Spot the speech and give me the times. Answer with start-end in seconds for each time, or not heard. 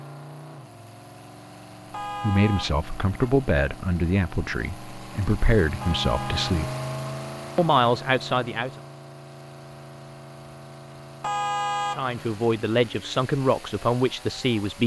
2.2-6.7, 7.5-8.7, 11.9-14.8.